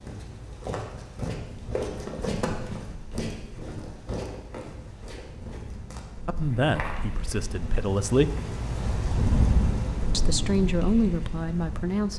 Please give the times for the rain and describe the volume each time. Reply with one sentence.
You can hear the rain from 0.0 to 12.1 s, getting louder.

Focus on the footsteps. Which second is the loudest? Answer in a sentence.
The volume of the footsteps peaks at 2 seconds.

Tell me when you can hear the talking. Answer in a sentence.
The talking can be heard from 6.2 to 8.3 s and from 10.1 to 12.1 s.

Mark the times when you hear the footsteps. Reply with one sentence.
The footsteps can be heard from 0.0 to 7.3 s.